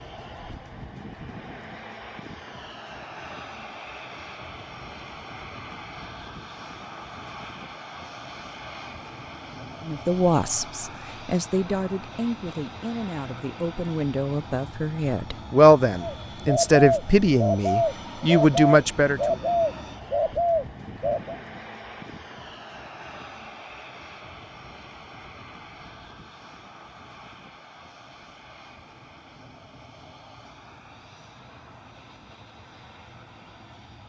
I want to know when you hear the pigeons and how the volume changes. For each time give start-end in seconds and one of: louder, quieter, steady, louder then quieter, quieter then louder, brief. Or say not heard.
16.0-21.4 steady.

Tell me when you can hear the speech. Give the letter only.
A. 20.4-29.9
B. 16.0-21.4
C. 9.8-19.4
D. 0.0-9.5
C.